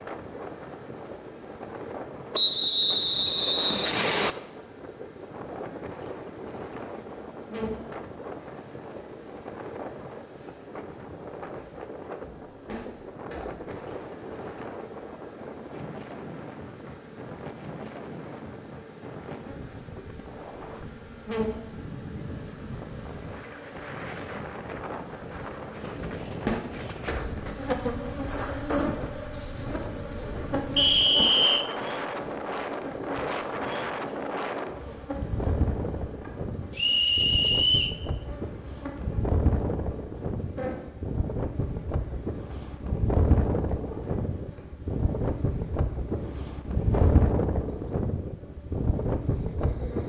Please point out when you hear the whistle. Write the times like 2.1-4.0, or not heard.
2.3-4.3, 30.8-31.6, 36.8-38.0.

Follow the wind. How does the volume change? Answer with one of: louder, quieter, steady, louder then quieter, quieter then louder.
louder.